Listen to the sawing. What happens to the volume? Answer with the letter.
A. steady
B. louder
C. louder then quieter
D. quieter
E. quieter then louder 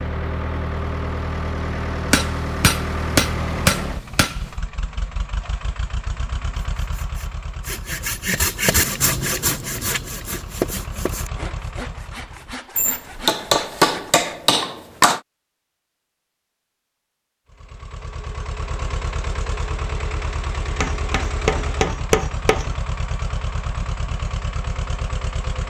C.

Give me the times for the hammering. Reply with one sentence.
You can hear the hammering from 2.1 to 4.5 s, from 12.8 to 15.2 s and from 20.8 to 22.8 s.